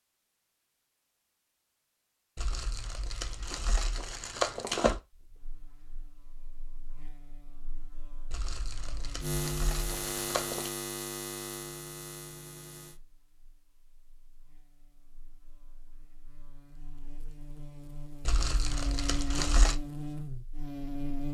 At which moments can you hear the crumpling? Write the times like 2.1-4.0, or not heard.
2.4-5.0, 8.3-10.7, 18.2-19.8.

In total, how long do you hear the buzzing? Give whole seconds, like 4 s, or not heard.
16 s.